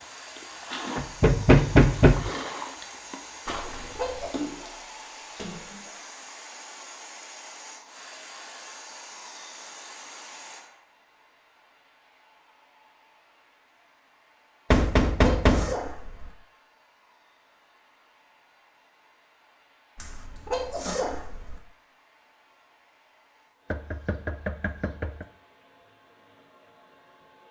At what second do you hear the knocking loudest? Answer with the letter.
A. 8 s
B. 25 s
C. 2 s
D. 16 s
C.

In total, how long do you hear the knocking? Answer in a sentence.
You can hear the knocking for 4 seconds altogether.